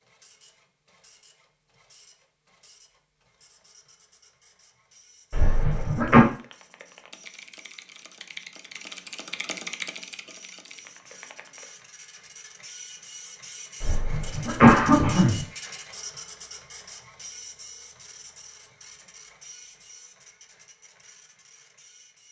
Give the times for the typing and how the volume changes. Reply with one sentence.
You can hear the typing from 6.2 to 11.7 s, getting louder then quieter.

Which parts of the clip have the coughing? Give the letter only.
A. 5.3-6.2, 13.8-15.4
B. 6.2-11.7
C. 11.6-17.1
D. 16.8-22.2
A.